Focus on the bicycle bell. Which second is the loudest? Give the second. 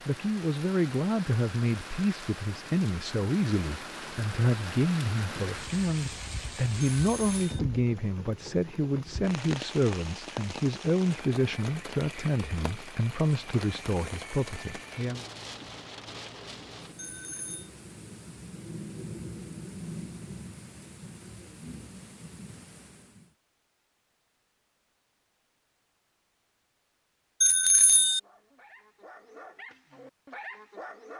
28 s.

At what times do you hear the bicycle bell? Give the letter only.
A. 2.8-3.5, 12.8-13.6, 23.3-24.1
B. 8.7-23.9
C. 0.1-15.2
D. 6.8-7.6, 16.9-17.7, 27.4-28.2
D.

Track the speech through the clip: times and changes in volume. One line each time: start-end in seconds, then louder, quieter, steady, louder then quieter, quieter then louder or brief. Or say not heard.
0.1-15.2 steady.